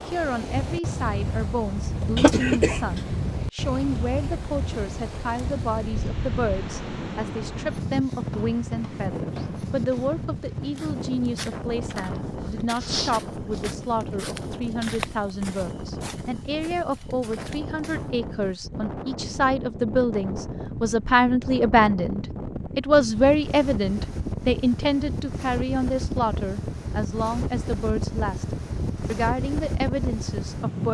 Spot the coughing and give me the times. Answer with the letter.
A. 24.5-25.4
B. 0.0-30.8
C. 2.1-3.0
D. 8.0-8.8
C.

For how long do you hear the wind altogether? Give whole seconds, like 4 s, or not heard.
31 s.